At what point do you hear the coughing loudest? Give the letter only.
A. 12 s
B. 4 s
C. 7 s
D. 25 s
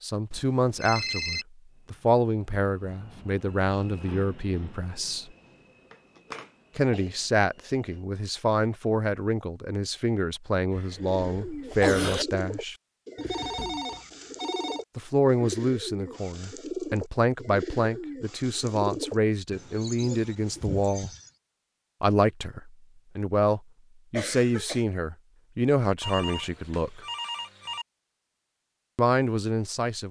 A.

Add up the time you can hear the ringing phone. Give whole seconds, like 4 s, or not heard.
5 s.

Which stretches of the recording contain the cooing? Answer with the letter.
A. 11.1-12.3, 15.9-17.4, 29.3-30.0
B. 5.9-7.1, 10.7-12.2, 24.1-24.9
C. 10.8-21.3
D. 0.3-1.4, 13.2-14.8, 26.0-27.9
C.